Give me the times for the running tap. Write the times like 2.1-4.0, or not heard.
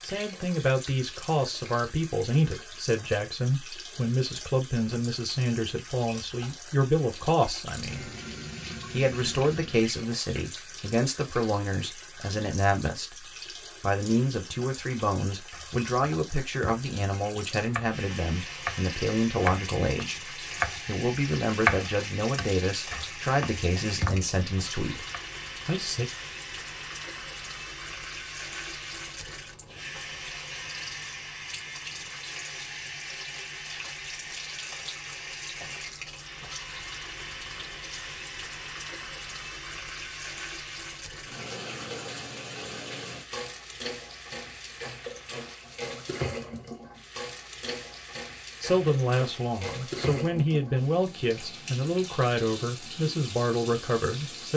0.0-54.5.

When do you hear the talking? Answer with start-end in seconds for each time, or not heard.
0.0-8.1, 8.9-25.1, 25.6-26.1, 48.6-54.5.